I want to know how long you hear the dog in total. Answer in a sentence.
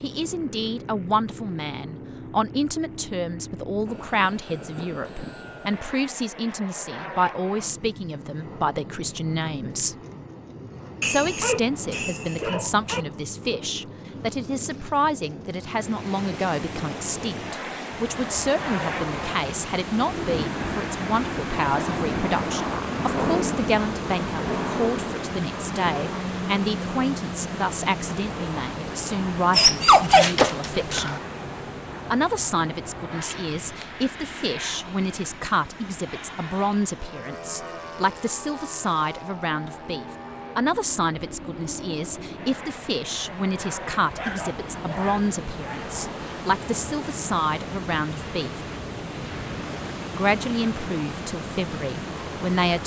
The dog can be heard for 6 seconds in total.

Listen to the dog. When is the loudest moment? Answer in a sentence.
The volume of the dog peaks at 30 seconds.